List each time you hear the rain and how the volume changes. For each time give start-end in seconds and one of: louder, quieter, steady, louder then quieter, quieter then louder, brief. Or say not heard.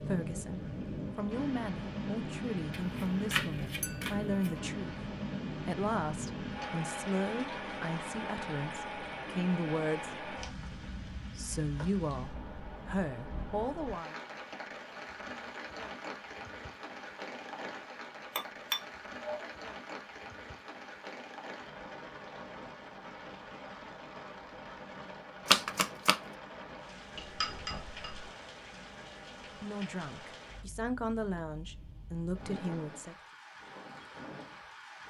0.0-35.0 quieter.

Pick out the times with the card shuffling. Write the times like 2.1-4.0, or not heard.
2.8-4.6, 25.4-26.1.